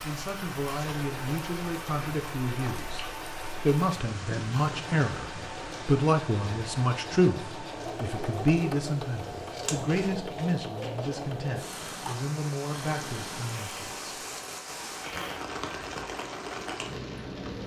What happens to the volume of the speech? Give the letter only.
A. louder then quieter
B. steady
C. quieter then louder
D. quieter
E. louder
A.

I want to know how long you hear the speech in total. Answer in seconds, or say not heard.
14 s.